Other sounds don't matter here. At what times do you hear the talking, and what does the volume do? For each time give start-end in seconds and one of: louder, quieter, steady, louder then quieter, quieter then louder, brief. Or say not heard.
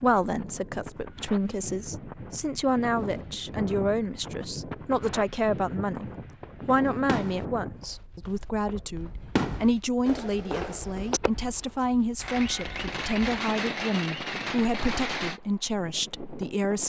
0.0-16.8 steady.